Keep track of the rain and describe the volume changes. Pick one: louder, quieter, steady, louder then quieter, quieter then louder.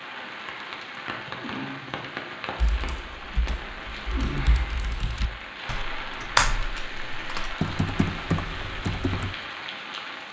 steady.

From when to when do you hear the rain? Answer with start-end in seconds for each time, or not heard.
0.0-10.2.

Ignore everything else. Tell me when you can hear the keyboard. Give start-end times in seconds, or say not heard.
2.6-9.3.